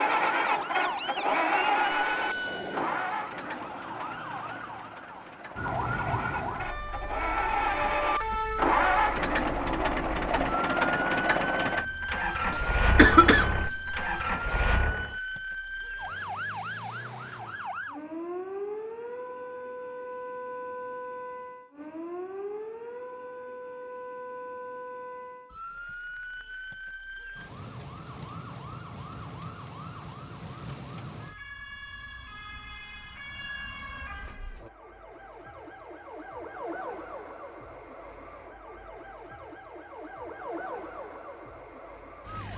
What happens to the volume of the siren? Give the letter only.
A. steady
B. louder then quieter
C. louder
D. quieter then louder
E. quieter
E.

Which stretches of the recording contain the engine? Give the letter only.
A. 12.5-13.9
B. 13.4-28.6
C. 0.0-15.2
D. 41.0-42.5
C.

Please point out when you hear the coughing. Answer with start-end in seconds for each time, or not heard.
12.5-13.9.